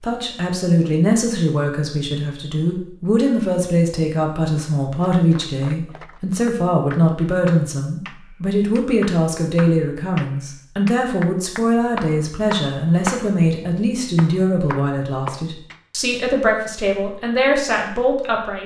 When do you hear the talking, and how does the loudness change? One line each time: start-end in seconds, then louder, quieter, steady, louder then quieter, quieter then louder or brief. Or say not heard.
0.0-18.6 steady.